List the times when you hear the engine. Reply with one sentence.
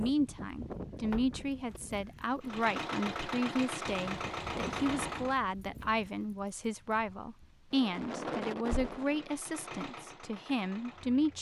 You can hear the engine from 2.4 to 5.3 s and from 9.0 to 11.3 s.